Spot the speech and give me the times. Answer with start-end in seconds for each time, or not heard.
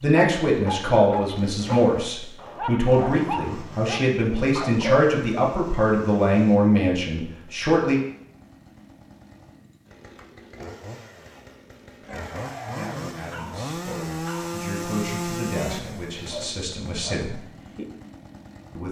0.0-8.0, 12.7-17.4.